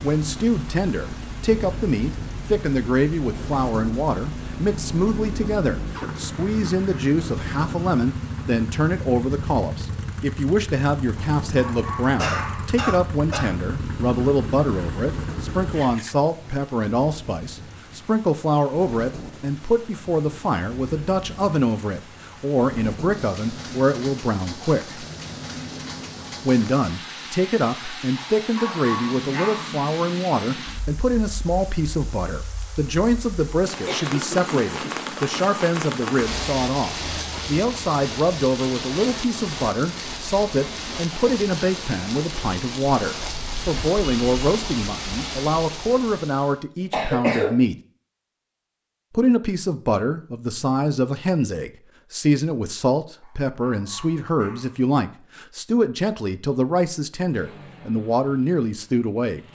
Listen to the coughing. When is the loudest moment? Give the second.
47 s.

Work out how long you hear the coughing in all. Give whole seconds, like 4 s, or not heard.
4 s.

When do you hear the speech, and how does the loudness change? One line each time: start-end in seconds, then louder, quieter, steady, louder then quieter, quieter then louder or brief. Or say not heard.
0.0-25.1 steady
26.4-47.8 steady
49.1-59.4 steady.